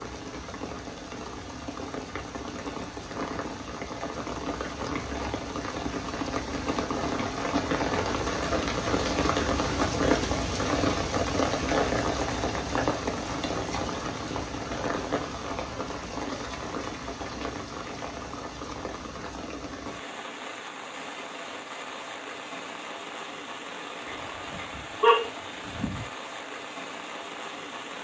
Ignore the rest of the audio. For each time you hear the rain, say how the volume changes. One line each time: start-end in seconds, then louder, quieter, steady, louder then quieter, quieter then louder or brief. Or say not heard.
0.0-28.0 louder then quieter.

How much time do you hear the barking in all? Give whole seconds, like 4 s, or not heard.
2 s.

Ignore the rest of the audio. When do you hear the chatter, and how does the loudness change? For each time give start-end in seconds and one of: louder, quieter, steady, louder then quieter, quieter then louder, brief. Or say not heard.
not heard.